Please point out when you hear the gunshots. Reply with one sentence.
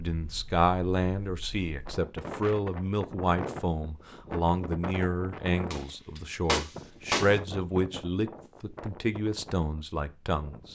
The gunshots can be heard from 5.7 to 7.3 s.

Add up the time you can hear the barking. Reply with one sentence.
The barking can't be heard in this clip.